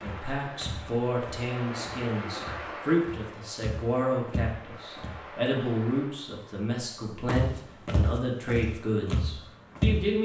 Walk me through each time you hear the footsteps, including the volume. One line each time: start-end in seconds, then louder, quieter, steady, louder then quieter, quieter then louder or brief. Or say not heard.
0.0-5.2 quieter then louder
7.2-10.0 brief.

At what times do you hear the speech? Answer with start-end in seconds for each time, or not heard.
0.0-10.2.